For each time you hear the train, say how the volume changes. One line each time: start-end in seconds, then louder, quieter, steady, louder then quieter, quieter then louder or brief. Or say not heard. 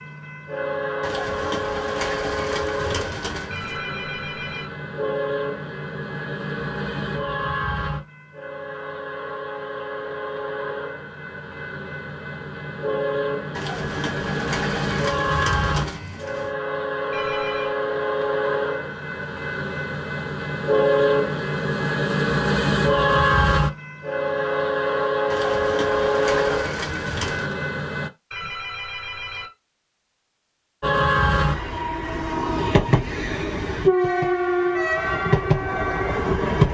0.0-28.1 louder
30.8-36.6 steady.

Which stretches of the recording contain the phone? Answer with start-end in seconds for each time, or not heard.
3.5-4.7, 17.1-17.8, 28.3-29.5.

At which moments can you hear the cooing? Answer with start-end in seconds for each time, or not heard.
1.0-3.8, 13.6-16.6, 25.3-27.6.